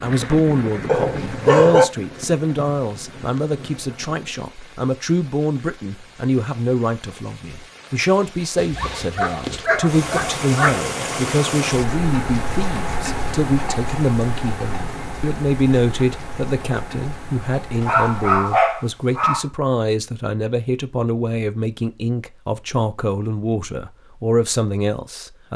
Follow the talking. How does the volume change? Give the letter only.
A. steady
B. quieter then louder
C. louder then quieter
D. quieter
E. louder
A.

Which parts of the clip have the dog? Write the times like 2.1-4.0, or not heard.
0.8-1.9, 8.6-10.8, 17.8-19.4.